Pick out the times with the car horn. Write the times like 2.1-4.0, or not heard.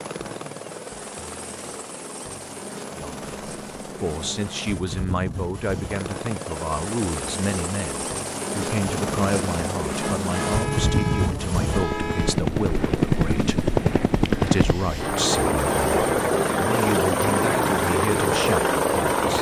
10.0-12.4.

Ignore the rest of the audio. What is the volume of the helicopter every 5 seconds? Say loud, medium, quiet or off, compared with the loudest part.
quiet, medium, loud, loud.